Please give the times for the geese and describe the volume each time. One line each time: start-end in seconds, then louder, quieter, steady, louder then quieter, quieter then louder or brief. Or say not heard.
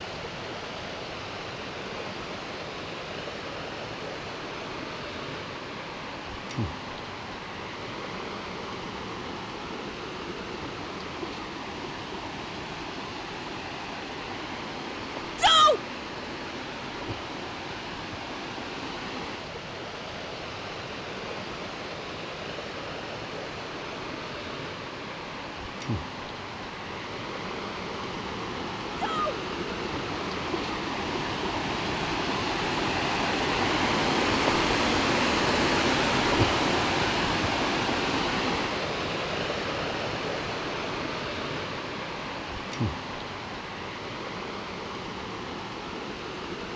not heard.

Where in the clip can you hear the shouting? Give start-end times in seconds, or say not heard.
15.3-15.8, 28.9-29.4.